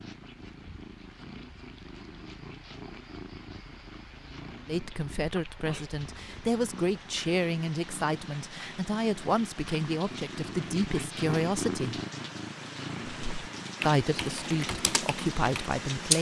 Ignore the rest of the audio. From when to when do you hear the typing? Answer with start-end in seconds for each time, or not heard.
13.1-16.1.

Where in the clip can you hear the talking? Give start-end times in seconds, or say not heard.
4.7-12.0, 13.8-16.1.